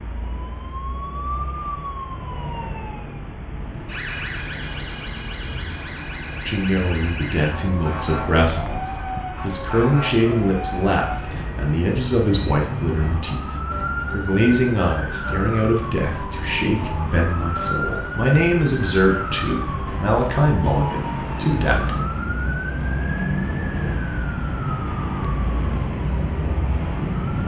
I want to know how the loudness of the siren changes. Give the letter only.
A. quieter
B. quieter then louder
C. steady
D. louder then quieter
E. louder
E.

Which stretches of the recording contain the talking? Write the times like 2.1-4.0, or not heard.
6.4-21.9.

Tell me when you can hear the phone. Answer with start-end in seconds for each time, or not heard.
not heard.